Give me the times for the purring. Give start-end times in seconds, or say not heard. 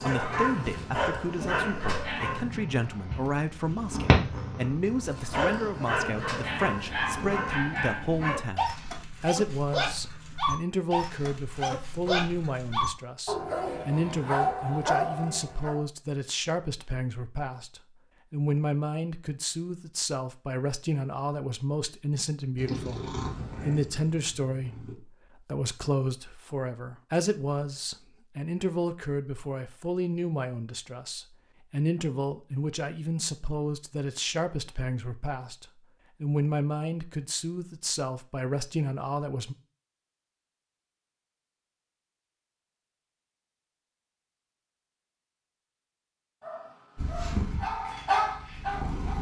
0.1-7.8, 22.6-24.9, 47.0-49.1.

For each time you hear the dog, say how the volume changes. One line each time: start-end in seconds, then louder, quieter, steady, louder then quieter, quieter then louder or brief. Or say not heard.
0.0-2.6 brief
4.9-15.8 steady
46.4-49.1 brief.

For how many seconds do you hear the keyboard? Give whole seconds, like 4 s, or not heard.
not heard.